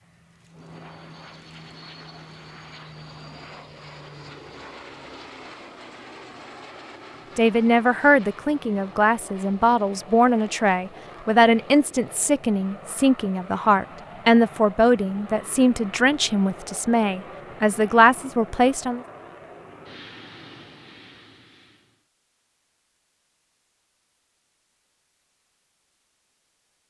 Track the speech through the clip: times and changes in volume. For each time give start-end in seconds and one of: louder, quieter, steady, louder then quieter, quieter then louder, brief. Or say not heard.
7.3-19.0 steady.